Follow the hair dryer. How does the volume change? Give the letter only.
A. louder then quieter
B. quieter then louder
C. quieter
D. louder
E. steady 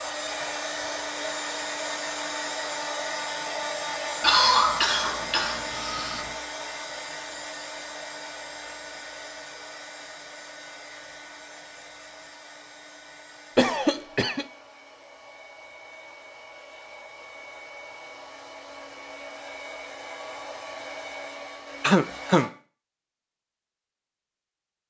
B.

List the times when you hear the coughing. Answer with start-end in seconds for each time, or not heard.
4.2-6.3, 13.6-14.4, 21.8-22.5.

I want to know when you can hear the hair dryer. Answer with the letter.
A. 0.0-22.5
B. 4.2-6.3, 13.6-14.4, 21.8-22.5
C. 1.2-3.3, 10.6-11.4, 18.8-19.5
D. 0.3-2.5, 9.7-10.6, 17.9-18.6
A.